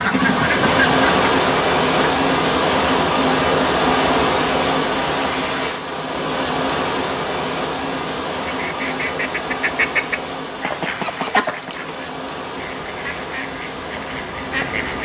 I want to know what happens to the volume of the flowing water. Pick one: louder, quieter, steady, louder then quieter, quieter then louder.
quieter.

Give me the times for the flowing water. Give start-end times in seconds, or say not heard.
0.0-15.0.